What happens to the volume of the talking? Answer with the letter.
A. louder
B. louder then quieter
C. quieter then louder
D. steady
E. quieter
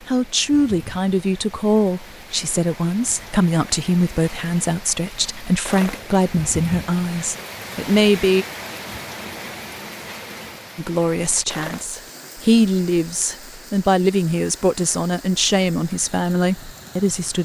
D.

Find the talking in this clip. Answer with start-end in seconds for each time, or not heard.
0.1-8.4, 10.8-17.4.